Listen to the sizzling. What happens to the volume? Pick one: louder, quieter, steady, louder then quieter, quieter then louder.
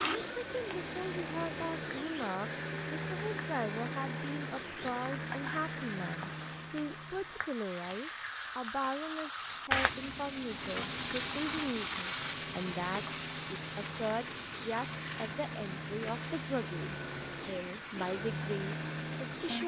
louder then quieter.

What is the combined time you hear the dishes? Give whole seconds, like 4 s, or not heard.
not heard.